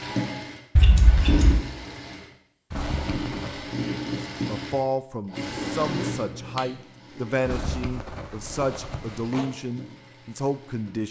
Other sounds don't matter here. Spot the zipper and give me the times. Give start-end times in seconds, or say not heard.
2.7-3.8, 7.5-9.5.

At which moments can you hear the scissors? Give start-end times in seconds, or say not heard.
0.8-1.6, 6.1-6.7.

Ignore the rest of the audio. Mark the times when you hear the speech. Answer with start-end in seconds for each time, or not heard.
4.5-11.0.